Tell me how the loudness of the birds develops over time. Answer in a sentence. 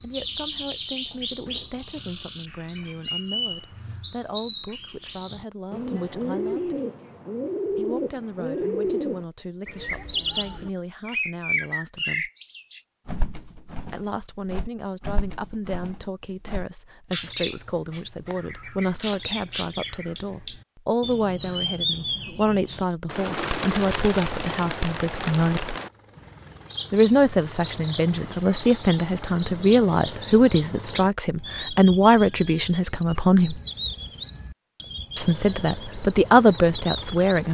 The volume of the birds stays about the same.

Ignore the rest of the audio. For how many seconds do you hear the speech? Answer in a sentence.
The speech can be heard for 32 seconds in total.